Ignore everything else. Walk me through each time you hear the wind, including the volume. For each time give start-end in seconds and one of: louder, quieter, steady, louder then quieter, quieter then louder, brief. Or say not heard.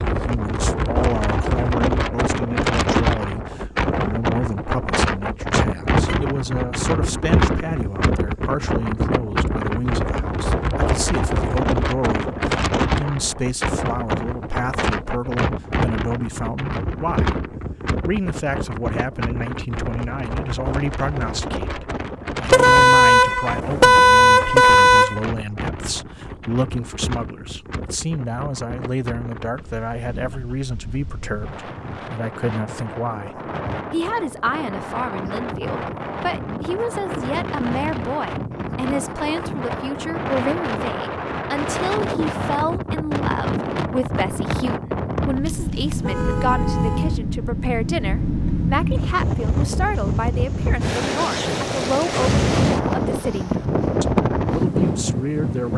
0.0-55.7 quieter then louder.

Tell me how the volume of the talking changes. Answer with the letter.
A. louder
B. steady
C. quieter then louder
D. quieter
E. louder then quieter
B.